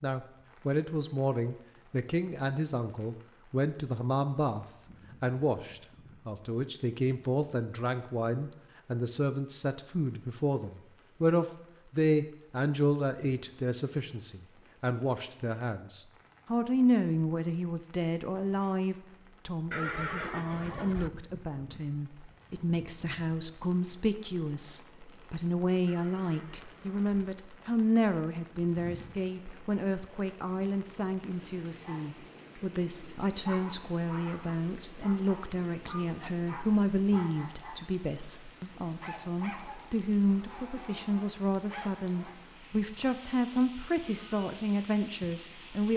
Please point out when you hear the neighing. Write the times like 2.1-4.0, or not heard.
19.7-21.1, 25.9-27.2.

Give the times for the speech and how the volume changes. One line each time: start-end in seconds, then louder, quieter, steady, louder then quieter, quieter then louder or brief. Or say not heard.
0.0-45.9 steady.